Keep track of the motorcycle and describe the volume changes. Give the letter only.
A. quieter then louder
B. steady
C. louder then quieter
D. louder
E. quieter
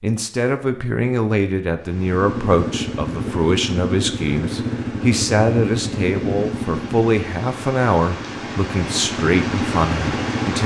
A.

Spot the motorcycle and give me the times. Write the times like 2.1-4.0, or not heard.
2.1-10.6.